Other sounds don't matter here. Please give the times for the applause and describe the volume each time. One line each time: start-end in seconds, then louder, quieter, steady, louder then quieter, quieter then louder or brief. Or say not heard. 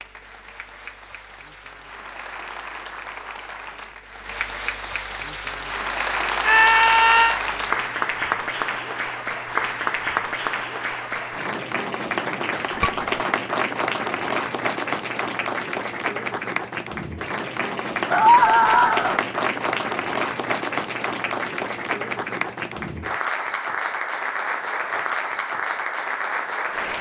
0.0-26.9 louder.